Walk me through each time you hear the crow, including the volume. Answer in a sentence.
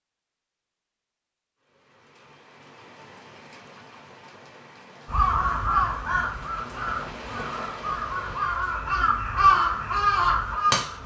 You can hear the crow from 5.0 to 11.0 s, getting quieter then louder.